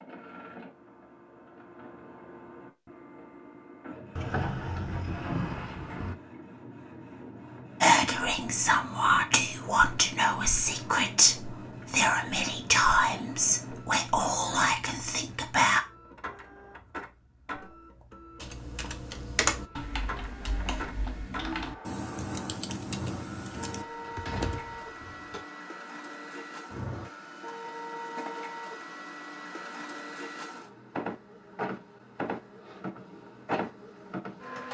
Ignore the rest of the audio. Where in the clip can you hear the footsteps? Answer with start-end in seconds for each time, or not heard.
not heard.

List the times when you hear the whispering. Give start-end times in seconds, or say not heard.
7.8-15.8.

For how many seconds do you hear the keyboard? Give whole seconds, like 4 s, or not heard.
6 s.